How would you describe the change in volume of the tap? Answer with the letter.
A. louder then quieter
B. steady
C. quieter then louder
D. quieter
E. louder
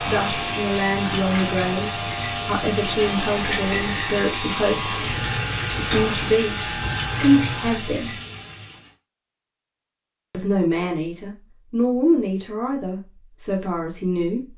B.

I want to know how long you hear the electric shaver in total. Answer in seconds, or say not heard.
8 s.